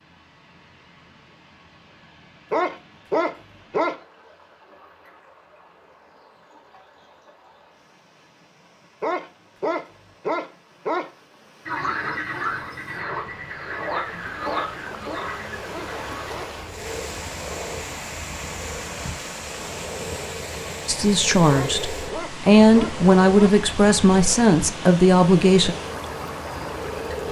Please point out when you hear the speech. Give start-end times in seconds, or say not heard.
20.9-25.8.